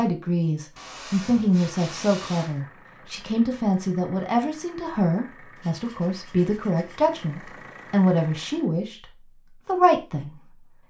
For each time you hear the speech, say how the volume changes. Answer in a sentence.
The speech can be heard from 0.0 to 10.4 s, at a steady volume.